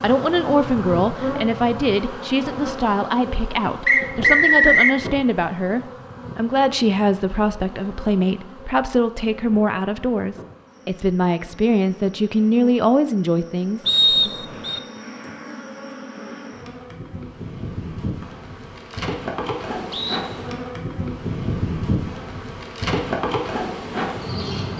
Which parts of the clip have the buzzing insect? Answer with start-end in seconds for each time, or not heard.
0.0-24.7.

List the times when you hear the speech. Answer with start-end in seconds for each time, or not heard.
0.0-14.3.